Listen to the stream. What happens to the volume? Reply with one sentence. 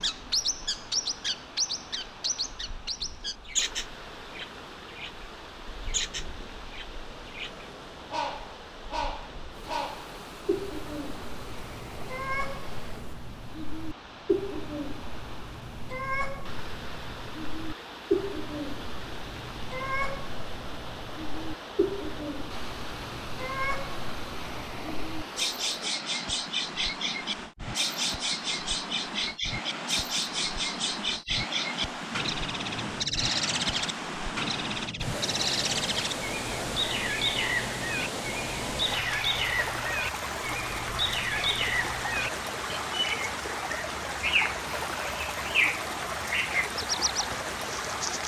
The volume of the stream goes up.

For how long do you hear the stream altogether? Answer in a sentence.
You can hear the stream for 48 seconds altogether.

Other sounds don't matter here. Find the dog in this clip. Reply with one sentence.
The dog can't be heard in this clip.